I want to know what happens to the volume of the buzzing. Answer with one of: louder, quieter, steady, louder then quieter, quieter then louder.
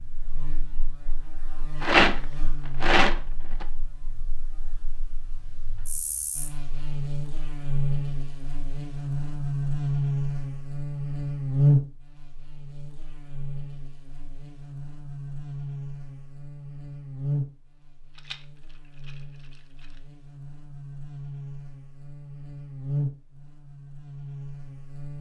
louder then quieter.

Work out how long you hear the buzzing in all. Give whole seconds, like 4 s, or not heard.
25 s.